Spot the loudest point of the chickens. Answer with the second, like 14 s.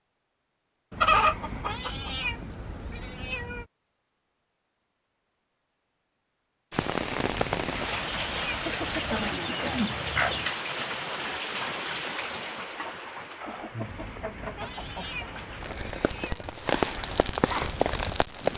1 s.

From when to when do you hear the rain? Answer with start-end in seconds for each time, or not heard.
6.7-18.5.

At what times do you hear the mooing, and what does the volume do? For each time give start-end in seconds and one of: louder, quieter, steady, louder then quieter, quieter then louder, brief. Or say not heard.
not heard.